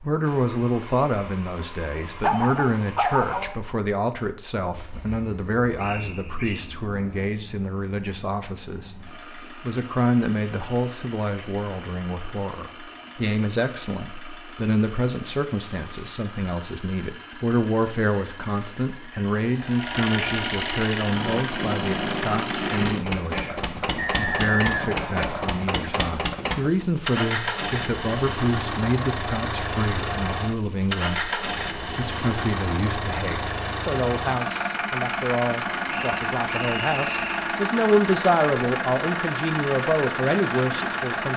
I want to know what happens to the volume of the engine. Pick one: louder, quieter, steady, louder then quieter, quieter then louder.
louder.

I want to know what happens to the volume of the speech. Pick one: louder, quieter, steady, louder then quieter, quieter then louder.
steady.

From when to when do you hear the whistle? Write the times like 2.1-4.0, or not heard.
5.8-6.7, 23.9-25.6, 35.9-37.5.